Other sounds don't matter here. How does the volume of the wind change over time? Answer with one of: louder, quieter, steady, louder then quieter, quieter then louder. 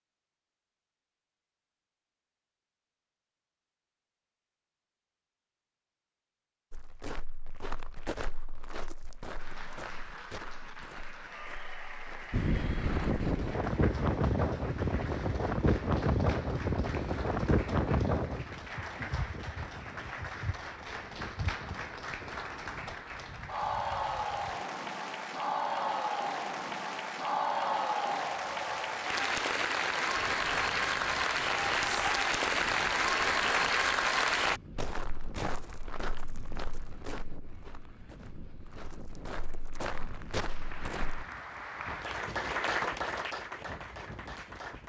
quieter.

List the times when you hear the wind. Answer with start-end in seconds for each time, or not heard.
12.3-44.8.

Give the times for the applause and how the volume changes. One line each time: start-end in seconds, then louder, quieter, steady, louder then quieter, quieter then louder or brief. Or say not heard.
9.3-34.6 louder
40.5-44.8 louder then quieter.